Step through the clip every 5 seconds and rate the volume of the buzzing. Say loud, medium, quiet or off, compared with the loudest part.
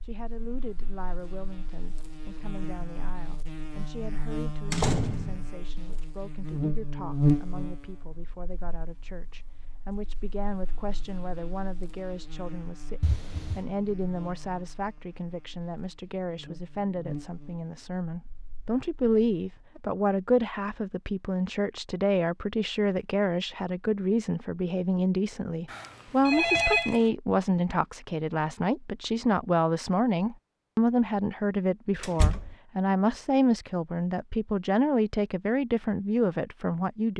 medium, loud, quiet, quiet, off, off, off, off.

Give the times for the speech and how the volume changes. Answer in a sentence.
You can hear the speech from 0.0 to 37.1 s, getting louder.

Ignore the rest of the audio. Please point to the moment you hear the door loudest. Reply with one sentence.
The volume of the door peaks at 5 seconds.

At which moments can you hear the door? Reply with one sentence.
You can hear the door from 4.7 to 5.5 s, from 13.0 to 13.7 s and from 32.0 to 32.5 s.